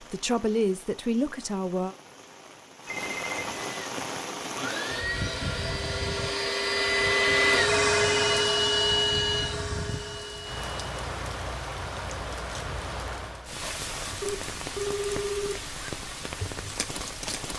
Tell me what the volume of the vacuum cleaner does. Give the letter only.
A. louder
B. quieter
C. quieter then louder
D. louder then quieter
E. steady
D.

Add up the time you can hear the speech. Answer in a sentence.
You can hear the speech for 2 seconds altogether.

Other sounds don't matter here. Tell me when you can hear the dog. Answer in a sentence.
The dog can't be heard in this clip.